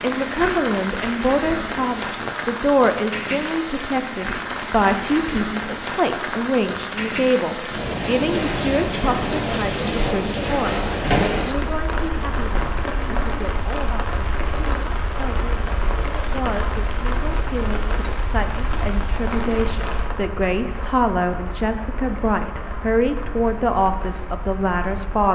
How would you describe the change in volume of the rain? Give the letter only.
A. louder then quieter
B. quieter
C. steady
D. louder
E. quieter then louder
B.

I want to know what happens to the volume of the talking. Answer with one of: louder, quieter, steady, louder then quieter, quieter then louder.
quieter then louder.